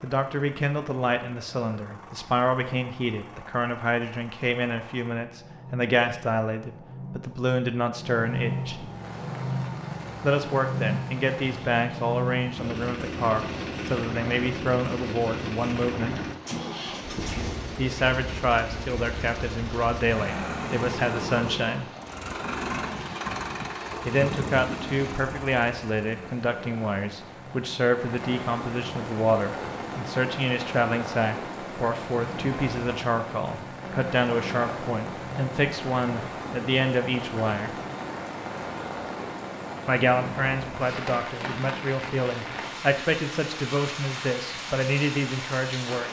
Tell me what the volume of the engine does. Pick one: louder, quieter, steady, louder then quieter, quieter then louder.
louder.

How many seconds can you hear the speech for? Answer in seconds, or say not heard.
39 s.